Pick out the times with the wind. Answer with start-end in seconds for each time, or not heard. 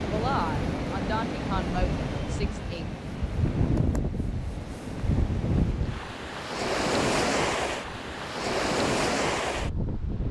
0.0-10.2.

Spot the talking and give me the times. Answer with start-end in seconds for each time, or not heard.
0.0-2.9.